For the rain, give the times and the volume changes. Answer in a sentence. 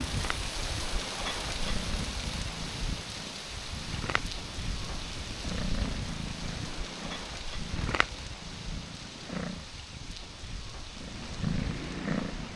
The rain can be heard from 0.0 to 12.5 s, getting quieter.